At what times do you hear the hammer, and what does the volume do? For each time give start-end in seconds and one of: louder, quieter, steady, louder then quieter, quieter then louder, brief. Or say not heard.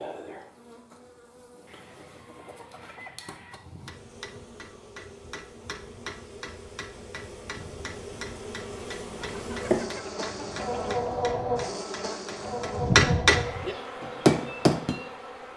3.5-14.9 louder.